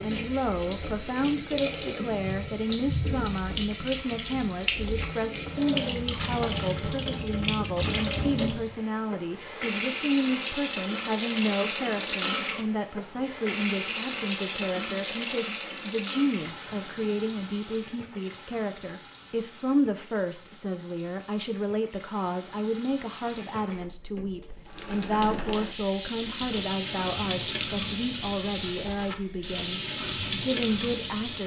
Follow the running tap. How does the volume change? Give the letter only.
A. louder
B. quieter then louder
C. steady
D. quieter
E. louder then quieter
B.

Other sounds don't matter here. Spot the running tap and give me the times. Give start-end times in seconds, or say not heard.
0.0-31.4.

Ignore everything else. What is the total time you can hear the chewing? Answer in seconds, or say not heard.
not heard.